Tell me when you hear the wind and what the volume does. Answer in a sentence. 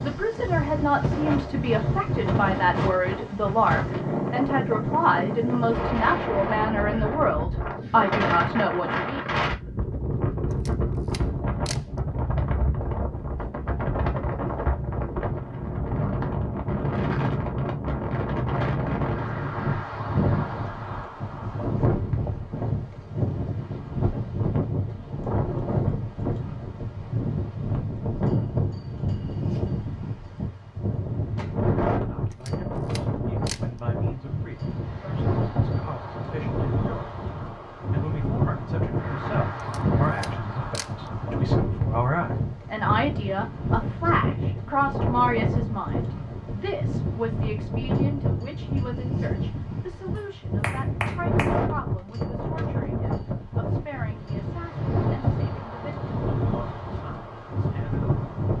The wind can be heard from 0.0 to 58.5 s, at a steady volume.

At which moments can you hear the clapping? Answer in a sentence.
The clapping can be heard from 50.1 to 51.6 s.